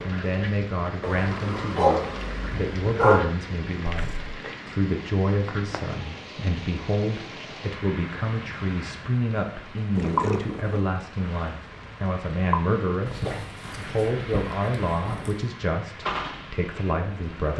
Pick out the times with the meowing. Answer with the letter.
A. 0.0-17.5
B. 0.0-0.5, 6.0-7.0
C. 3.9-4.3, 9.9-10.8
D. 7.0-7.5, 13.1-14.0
C.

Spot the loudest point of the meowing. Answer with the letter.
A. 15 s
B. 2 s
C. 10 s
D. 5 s
C.